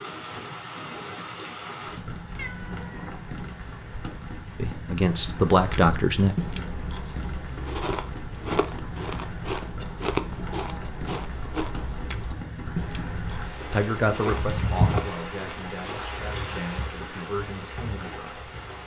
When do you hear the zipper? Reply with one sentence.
The zipper can't be heard in this clip.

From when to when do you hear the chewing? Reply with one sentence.
The chewing can be heard from 5.5 to 16.1 s.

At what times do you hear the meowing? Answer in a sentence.
The meowing can be heard from 2.4 to 3.2 s.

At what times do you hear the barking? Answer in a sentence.
You can't hear the barking here.